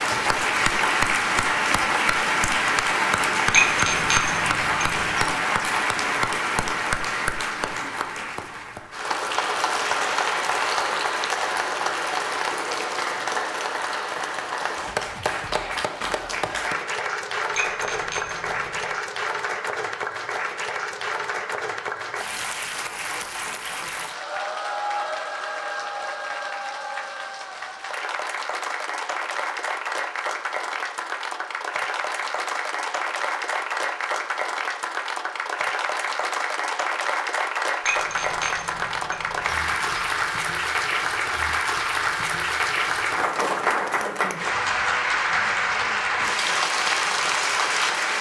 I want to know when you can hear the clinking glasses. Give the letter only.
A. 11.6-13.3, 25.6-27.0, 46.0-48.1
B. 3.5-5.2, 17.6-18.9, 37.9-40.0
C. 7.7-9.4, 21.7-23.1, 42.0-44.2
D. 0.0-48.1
B.